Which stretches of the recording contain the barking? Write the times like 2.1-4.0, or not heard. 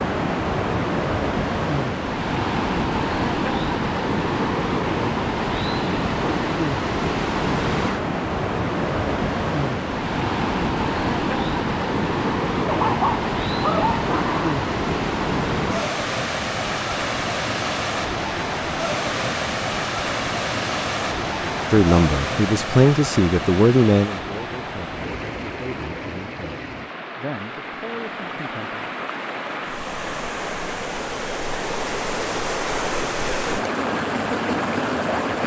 12.7-14.6.